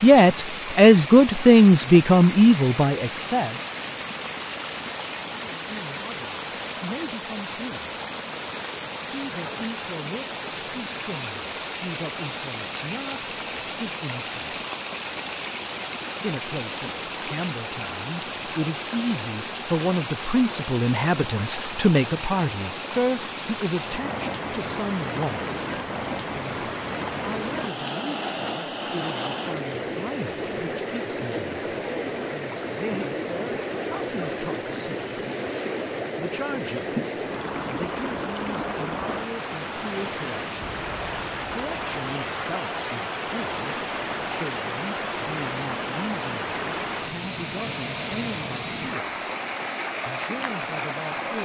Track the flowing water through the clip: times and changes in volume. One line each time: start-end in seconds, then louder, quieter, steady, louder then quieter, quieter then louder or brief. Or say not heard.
0.0-51.4 steady.